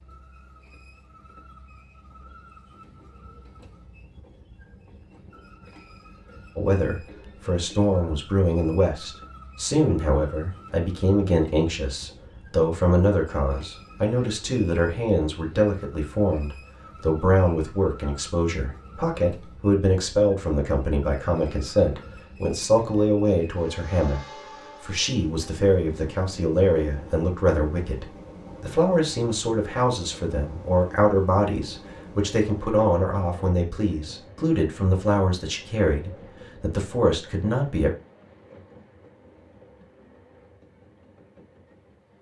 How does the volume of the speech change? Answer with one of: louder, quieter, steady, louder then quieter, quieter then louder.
steady.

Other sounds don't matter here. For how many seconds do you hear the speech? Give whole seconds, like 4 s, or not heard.
31 s.